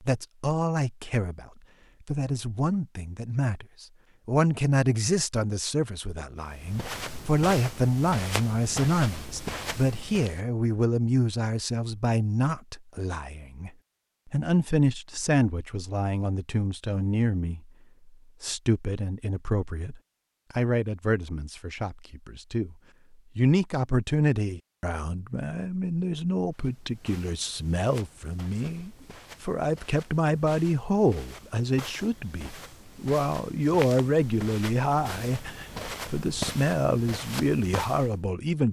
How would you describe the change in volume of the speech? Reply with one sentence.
The loudness of the speech stays about the same.